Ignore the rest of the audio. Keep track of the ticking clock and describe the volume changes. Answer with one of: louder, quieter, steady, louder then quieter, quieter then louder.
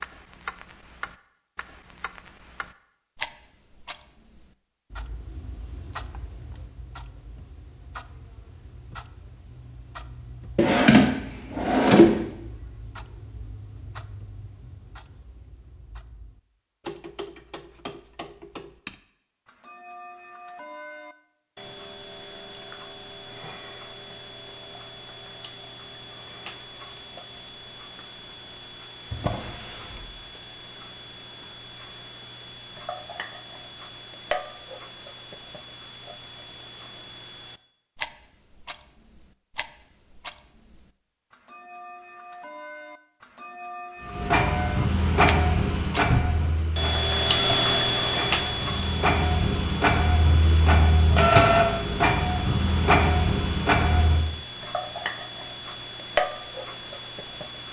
louder.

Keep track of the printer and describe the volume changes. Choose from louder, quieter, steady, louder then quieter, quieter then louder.
quieter then louder.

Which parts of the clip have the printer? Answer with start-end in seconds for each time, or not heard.
44.0-54.3.